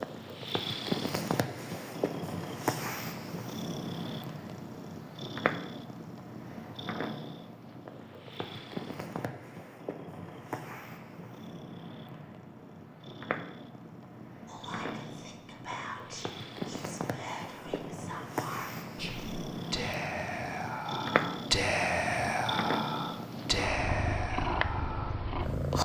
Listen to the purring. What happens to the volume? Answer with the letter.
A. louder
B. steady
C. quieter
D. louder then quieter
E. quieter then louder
E.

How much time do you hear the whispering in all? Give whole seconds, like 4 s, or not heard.
11 s.